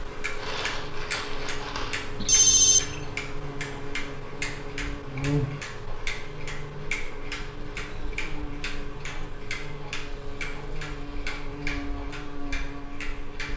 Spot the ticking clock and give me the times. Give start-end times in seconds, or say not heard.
0.0-13.5.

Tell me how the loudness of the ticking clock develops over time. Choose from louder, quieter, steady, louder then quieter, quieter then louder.
steady.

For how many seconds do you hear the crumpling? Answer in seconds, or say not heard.
2 s.